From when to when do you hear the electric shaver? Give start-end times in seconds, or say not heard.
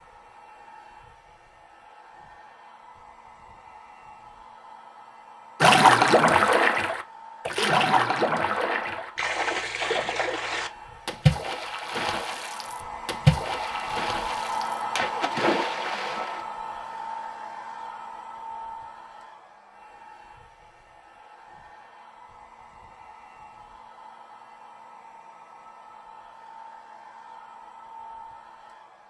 not heard.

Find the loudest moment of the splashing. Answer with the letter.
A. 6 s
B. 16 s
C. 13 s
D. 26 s
A.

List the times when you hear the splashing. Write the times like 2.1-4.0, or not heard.
5.6-16.4.